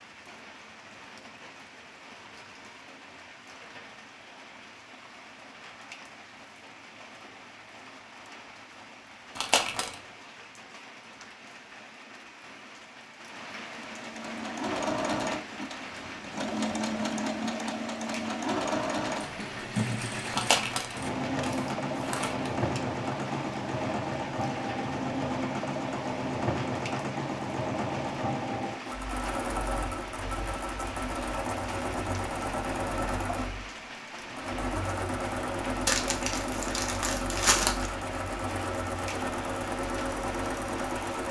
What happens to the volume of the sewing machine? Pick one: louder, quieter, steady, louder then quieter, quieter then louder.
steady.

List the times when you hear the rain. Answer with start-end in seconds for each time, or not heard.
0.0-41.2.